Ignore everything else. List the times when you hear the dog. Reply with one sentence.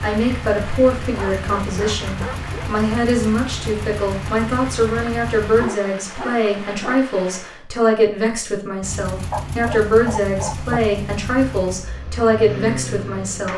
The dog can be heard from 1.1 to 2.7 s, from 5.5 to 7.0 s and from 9.3 to 10.8 s.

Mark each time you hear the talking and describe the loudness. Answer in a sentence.
The talking can be heard from 0.0 to 13.5 s, at a steady volume.